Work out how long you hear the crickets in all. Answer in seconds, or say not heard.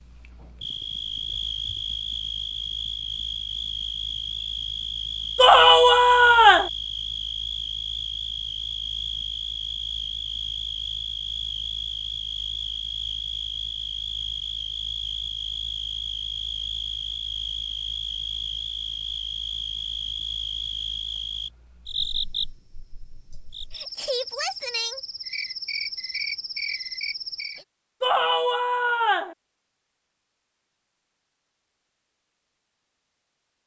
28 s.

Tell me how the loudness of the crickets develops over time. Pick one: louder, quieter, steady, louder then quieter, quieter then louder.
steady.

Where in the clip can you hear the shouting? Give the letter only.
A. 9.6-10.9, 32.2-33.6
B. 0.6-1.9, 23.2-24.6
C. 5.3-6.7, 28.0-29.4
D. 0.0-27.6
C.